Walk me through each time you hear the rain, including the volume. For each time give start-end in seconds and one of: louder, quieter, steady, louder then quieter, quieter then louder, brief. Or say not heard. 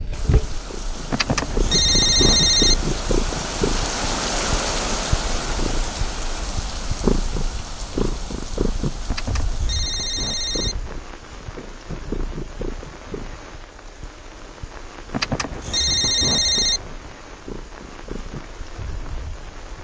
0.1-19.8 quieter.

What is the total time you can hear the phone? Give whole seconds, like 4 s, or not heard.
5 s.